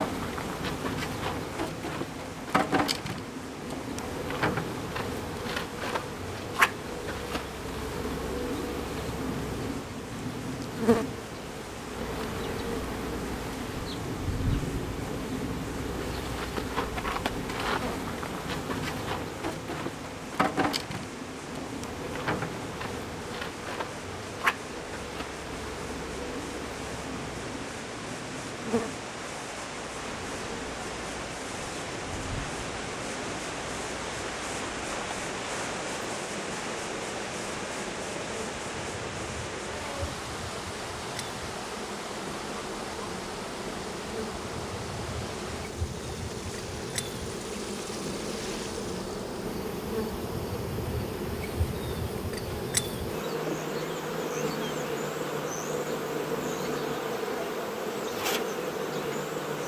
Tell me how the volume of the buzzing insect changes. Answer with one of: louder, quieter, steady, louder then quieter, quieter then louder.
quieter then louder.